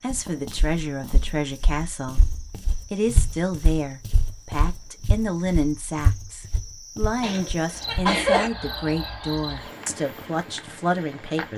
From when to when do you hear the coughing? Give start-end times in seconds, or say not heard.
7.2-8.5.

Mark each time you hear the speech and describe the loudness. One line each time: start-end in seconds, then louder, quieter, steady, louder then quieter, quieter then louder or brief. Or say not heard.
0.0-2.2 brief
2.9-11.5 steady.